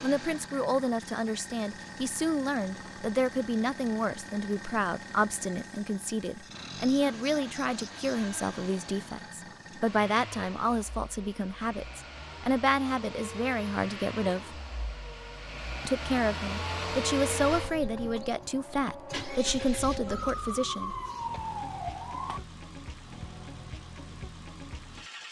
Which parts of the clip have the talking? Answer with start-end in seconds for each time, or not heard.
0.0-14.6, 15.8-20.9.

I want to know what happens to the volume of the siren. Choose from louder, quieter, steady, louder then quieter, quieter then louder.
louder.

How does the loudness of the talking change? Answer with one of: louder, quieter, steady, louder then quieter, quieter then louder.
steady.